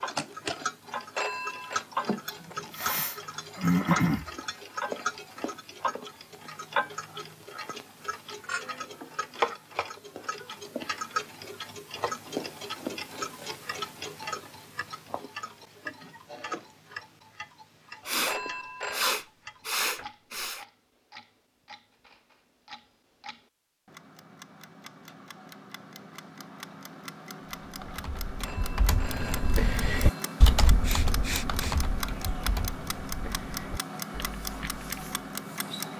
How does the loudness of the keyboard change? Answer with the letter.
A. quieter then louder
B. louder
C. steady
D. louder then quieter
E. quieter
D.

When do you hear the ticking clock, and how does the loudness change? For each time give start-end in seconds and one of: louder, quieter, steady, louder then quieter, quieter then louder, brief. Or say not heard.
0.0-35.9 quieter then louder.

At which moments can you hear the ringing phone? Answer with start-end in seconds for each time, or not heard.
1.1-1.9, 18.2-19.1, 28.4-30.4.